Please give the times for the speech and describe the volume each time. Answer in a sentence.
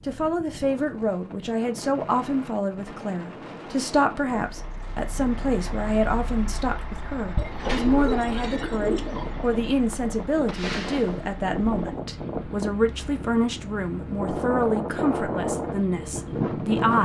The speech can be heard from 0.0 to 17.0 s, at a steady volume.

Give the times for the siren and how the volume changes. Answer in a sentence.
The siren can't be heard in this clip.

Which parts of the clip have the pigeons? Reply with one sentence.
The pigeons can be heard from 7.3 to 9.3 s.